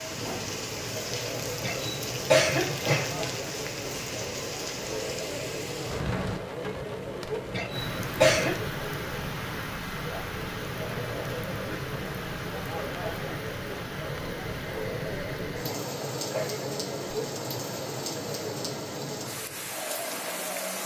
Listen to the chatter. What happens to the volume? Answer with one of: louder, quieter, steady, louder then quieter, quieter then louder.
steady.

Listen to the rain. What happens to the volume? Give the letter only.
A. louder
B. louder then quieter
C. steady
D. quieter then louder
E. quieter
C.